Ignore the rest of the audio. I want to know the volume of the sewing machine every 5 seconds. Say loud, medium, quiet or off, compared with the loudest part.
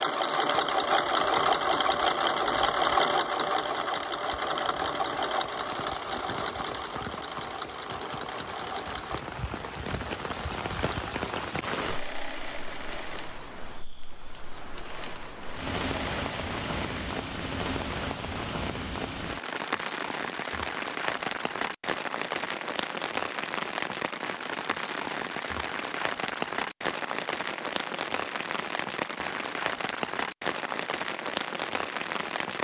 loud, medium, quiet, quiet, off, off, off.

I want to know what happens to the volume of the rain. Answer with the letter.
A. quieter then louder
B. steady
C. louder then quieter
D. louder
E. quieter
D.